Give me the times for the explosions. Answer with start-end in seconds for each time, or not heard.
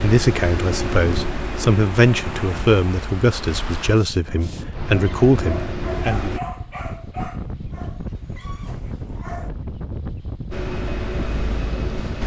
not heard.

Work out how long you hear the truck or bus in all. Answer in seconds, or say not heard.
8 s.